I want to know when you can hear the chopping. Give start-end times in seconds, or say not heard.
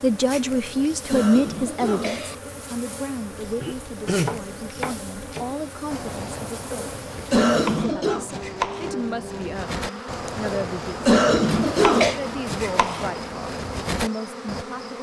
3.4-14.7.